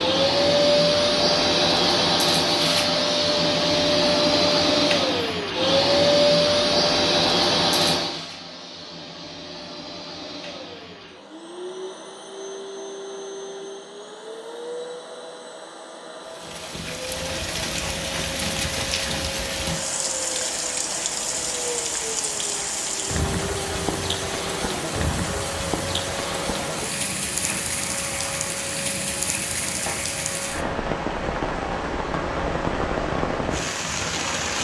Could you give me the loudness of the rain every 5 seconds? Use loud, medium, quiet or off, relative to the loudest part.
off, off, off, loud, loud, loud, loud.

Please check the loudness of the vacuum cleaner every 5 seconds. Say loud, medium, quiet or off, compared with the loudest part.
loud, loud, quiet, quiet, quiet, quiet, quiet.